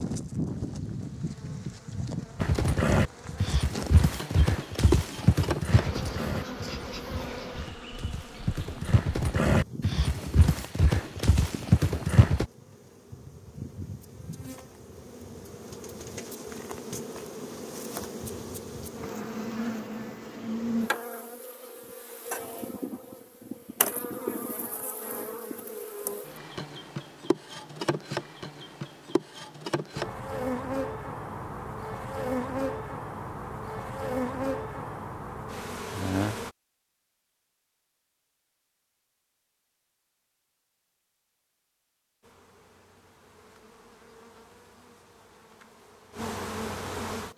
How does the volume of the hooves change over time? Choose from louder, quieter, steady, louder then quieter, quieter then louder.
quieter then louder.